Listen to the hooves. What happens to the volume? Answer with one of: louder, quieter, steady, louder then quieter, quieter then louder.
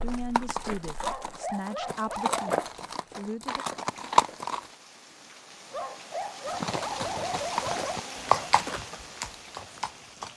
louder then quieter.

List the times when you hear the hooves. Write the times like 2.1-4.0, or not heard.
0.0-4.7, 6.5-10.3.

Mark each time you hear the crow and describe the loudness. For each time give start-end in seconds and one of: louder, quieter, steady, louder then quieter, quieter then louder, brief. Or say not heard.
not heard.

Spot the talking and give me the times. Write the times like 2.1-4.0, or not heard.
0.0-3.6.